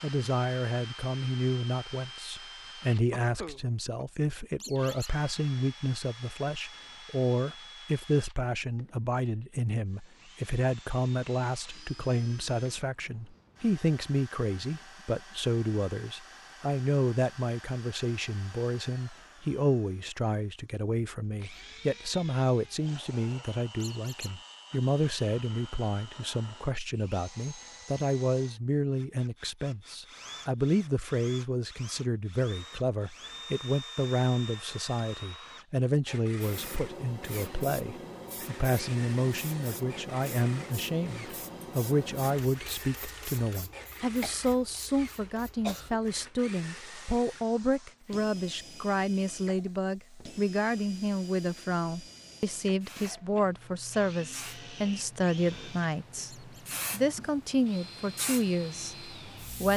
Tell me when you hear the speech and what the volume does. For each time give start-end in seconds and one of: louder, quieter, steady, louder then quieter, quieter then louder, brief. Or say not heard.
0.0-59.7 steady.